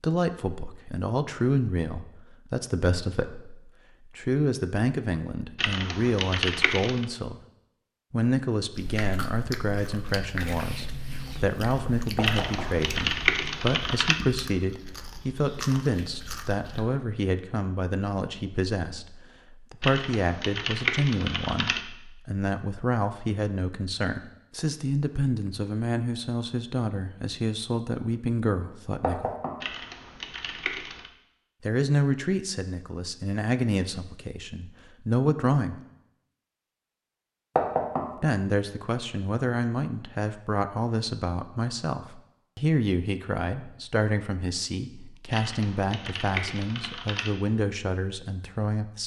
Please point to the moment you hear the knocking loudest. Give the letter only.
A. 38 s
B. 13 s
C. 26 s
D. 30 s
A.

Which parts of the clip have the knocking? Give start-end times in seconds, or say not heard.
12.2-12.7, 29.0-29.6, 37.5-38.0.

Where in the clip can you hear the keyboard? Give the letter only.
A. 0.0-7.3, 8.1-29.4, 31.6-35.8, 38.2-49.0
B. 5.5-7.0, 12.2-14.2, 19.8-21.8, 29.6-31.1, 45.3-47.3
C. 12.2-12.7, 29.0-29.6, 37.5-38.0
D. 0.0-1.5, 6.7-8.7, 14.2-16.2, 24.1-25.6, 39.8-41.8
B.